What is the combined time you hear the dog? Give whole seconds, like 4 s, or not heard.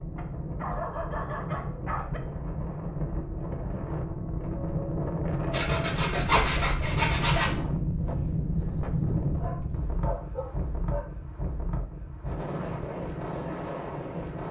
4 s.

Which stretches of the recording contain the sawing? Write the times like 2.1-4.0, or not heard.
5.5-7.5.